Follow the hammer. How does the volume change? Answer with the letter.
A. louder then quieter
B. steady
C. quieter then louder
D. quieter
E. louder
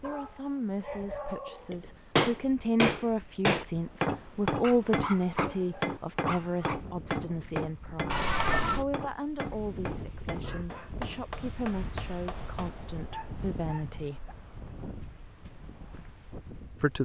D.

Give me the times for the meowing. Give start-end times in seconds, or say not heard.
8.1-8.8.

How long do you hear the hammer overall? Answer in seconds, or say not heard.
11 s.